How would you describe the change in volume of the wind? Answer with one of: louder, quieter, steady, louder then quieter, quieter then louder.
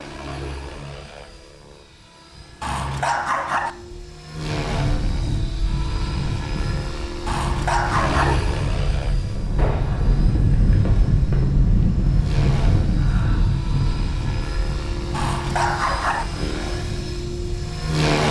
louder then quieter.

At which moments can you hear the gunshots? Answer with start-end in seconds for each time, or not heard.
9.6-11.4.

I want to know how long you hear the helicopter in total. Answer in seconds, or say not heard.
18 s.